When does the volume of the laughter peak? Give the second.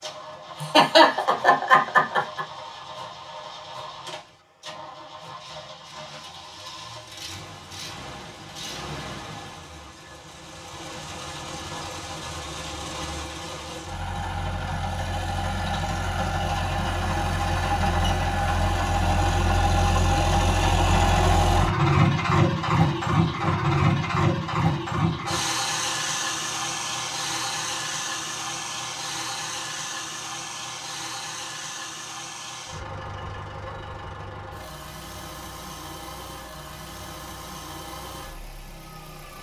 1 s.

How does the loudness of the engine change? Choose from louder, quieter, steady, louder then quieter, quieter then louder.
louder then quieter.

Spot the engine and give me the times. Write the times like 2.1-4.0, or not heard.
0.0-39.3.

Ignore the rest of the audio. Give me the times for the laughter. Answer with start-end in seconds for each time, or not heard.
0.6-2.5.